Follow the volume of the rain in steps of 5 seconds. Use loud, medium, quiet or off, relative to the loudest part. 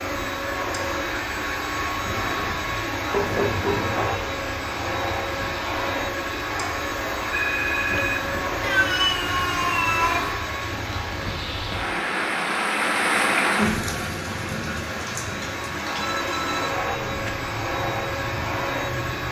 quiet, quiet, loud, medium.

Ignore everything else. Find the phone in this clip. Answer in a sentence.
The phone can be heard from 3.1 to 4.2 s, from 7.3 to 8.3 s and from 15.9 to 17.3 s.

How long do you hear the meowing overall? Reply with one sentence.
The meowing can be heard for 2 seconds in total.